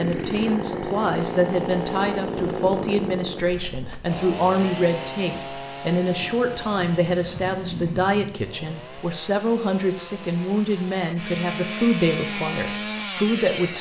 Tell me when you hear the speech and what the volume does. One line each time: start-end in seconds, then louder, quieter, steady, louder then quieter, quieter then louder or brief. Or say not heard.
0.0-13.7 steady.